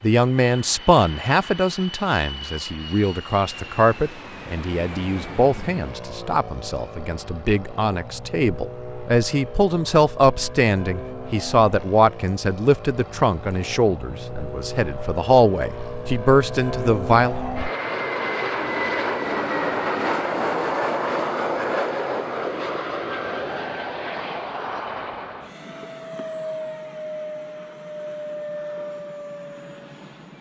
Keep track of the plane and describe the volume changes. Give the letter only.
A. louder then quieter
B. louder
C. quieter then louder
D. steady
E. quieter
A.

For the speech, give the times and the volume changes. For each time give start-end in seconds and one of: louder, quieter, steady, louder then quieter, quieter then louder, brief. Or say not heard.
0.0-17.4 steady.